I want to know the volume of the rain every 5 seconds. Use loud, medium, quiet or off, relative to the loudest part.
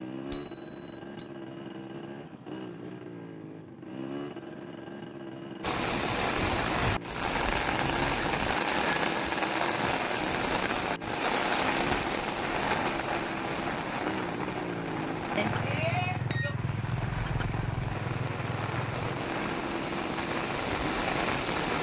off, loud, loud, medium, loud.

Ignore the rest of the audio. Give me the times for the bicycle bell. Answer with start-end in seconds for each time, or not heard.
0.3-1.3, 8.0-9.3, 15.3-16.6.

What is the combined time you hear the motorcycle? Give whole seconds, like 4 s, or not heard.
22 s.